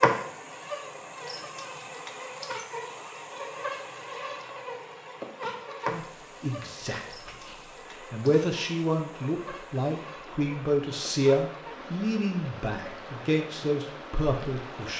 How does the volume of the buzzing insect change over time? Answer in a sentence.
The volume of the buzzing insect goes down.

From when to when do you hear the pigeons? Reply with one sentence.
You can't hear the pigeons here.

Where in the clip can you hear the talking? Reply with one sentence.
The talking can be heard from 5.9 to 14.9 s.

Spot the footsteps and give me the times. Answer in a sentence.
You can't hear the footsteps here.